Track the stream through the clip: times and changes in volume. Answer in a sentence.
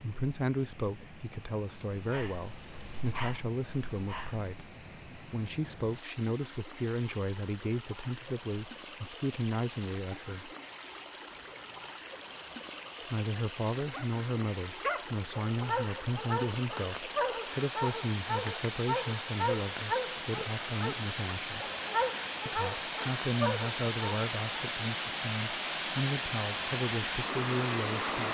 The stream can be heard from 0.0 to 28.2 s, getting louder.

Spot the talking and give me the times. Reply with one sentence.
The talking can be heard from 0.0 to 10.5 s, from 13.1 to 21.6 s and from 22.4 to 28.2 s.